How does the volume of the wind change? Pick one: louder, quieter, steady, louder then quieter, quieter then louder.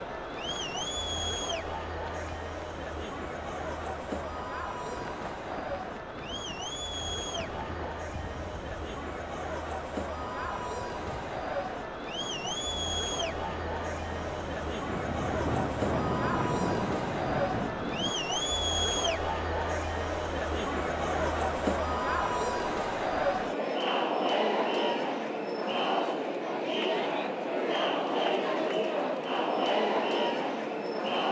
louder.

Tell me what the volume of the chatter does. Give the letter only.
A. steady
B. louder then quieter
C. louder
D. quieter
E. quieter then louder
C.